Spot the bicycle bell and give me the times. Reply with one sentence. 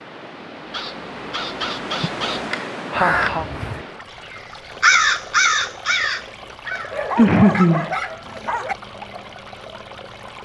You can't hear the bicycle bell here.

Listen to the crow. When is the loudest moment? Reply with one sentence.
The volume of the crow peaks at 5 seconds.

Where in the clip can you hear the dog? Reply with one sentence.
You can hear the dog from 6.9 to 8.8 s.